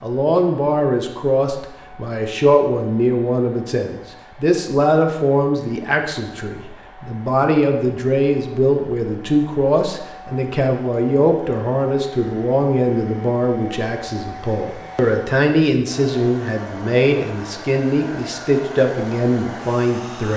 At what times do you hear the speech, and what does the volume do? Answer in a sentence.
The speech can be heard from 0.0 to 20.3 s, at a steady volume.